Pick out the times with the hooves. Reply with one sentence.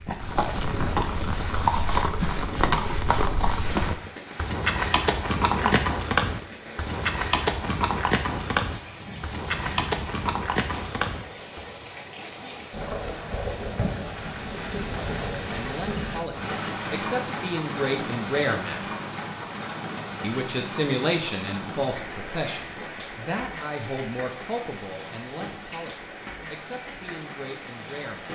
You can hear the hooves from 0.0 to 11.7 s.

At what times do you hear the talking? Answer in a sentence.
You can hear the talking from 15.1 to 18.8 s and from 20.2 to 28.3 s.